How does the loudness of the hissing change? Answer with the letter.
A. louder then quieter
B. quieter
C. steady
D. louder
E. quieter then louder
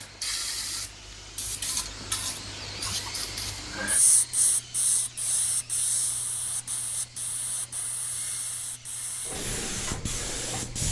E.